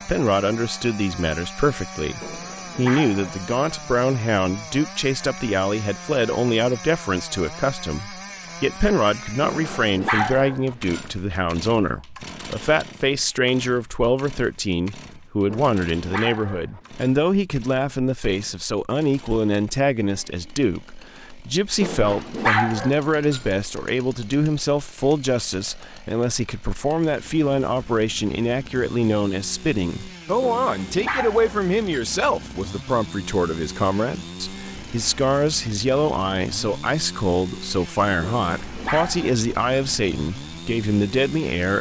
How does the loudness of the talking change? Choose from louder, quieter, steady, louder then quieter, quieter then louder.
steady.